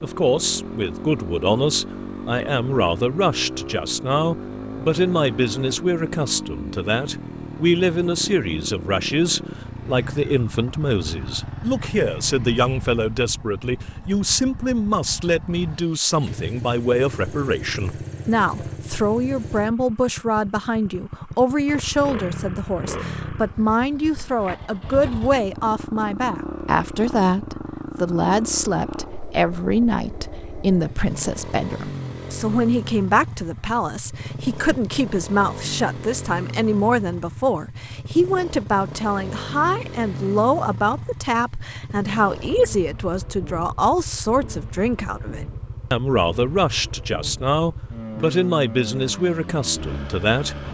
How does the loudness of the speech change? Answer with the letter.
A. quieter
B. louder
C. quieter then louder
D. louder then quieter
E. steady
E.